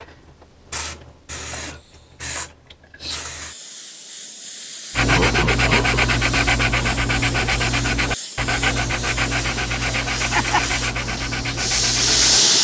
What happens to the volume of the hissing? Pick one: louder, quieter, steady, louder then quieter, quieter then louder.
louder.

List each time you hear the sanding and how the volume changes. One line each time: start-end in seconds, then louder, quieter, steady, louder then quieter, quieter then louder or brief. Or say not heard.
4.9-12.4 quieter.